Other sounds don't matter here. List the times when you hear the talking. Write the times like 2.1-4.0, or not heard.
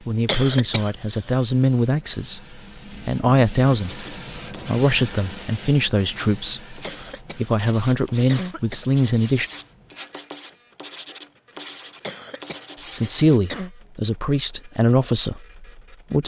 0.1-9.5, 12.9-16.2.